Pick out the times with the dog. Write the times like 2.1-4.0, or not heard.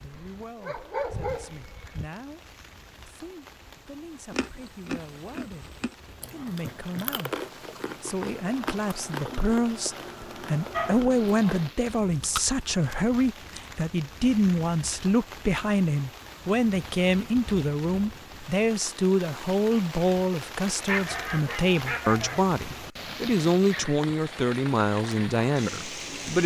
0.1-2.0, 10.7-11.6, 20.9-22.4.